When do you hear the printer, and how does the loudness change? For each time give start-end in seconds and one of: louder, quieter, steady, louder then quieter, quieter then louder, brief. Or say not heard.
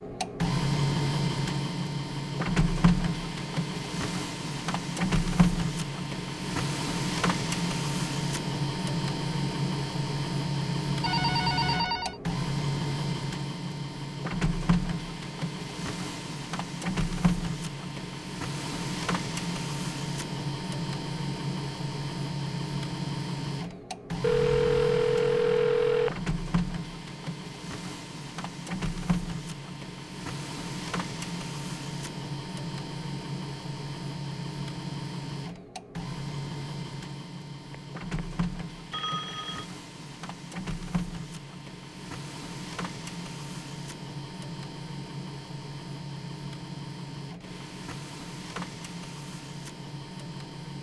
0.0-50.7 quieter.